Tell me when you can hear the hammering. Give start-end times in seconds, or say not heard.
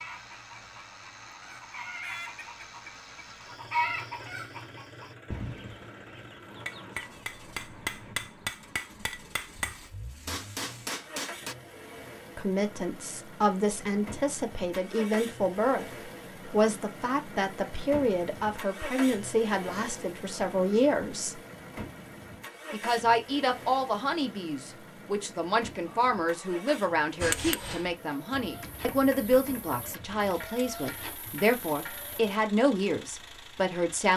6.5-11.6, 27.2-32.1.